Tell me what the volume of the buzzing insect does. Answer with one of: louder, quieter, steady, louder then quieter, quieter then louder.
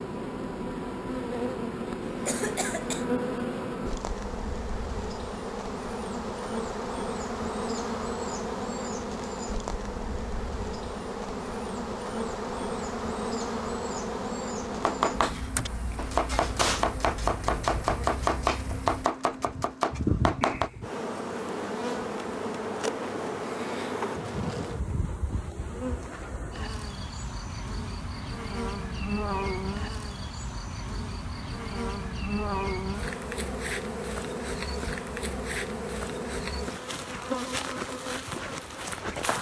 steady.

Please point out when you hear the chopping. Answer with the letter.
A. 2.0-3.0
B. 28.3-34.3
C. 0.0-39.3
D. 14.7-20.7
D.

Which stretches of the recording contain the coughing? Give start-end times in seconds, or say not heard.
2.0-3.0.